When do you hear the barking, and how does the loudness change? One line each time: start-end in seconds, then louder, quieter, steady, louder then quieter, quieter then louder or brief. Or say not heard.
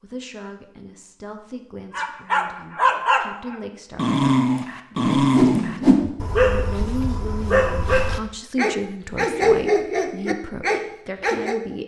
1.9-11.6 steady.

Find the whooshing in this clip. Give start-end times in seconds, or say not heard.
5.2-6.1.